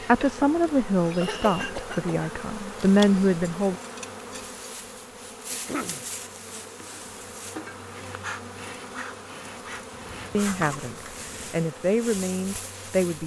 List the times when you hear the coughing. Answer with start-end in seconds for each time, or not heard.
1.2-2.3, 5.5-6.0, 9.9-11.6.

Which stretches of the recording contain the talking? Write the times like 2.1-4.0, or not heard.
0.1-3.8, 10.3-13.2.